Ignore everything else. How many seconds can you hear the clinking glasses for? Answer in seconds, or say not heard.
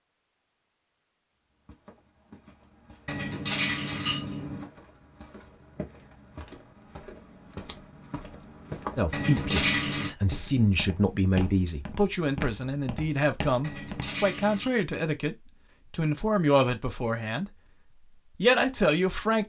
4 s.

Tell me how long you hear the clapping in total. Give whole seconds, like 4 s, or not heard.
not heard.